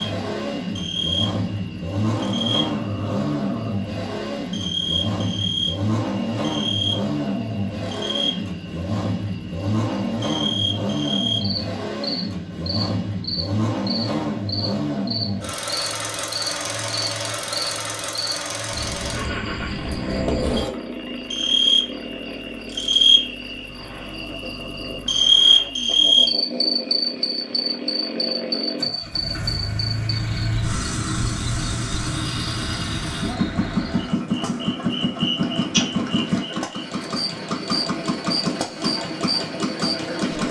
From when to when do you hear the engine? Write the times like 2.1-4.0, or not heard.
0.0-40.4.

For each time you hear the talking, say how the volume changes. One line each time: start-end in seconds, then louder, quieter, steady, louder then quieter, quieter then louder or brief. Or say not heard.
not heard.